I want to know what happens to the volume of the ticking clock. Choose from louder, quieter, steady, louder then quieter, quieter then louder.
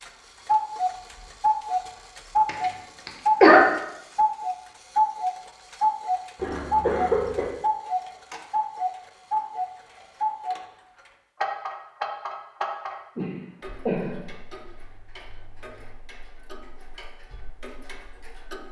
quieter.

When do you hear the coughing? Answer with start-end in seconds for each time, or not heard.
2.5-3.6, 6.3-7.5, 13.2-14.2.